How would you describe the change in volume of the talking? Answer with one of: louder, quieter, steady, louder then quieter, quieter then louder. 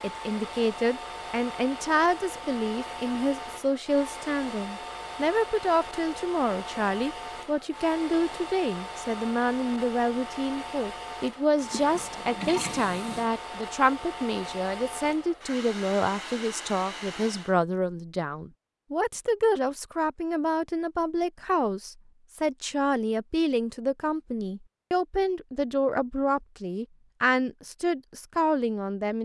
steady.